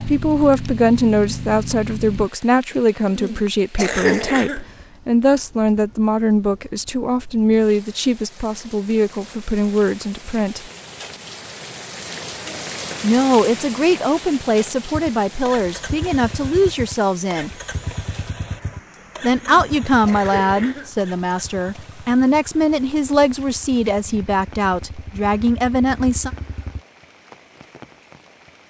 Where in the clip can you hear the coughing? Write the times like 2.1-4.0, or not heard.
2.7-4.7, 19.4-20.9.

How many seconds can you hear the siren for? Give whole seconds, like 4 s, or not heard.
not heard.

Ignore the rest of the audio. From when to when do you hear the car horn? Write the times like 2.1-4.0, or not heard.
not heard.